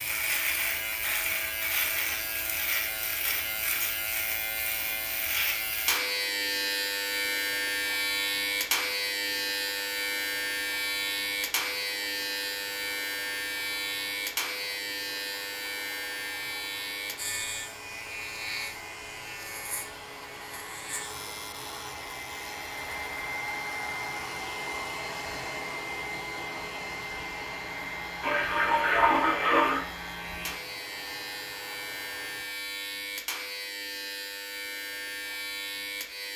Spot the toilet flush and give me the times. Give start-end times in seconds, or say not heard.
28.2-29.9.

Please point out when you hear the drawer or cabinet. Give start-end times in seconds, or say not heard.
not heard.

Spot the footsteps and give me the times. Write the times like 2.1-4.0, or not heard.
not heard.